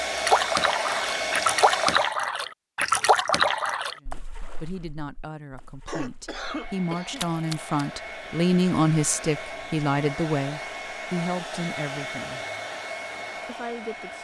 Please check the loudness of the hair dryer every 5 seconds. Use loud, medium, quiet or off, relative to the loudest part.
loud, medium, medium.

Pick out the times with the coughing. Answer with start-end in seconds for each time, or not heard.
5.8-7.2.